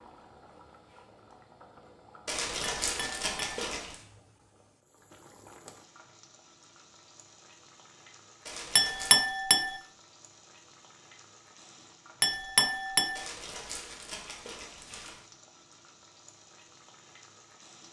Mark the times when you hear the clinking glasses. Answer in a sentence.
You can hear the clinking glasses from 2.8 to 3.6 s, from 8.8 to 9.8 s and from 12.2 to 13.2 s.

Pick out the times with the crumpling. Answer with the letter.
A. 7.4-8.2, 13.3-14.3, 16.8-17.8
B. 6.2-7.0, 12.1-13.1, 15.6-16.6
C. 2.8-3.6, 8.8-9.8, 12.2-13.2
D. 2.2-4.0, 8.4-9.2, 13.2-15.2
D.